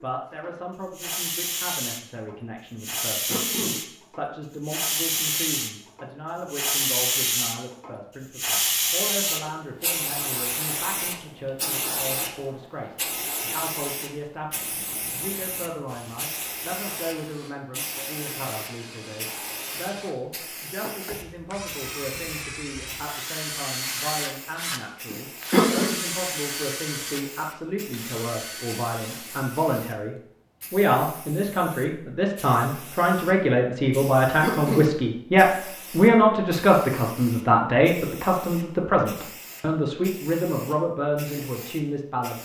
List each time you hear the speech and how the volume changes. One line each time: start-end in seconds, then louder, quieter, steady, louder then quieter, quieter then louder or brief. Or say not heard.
0.0-42.3 louder.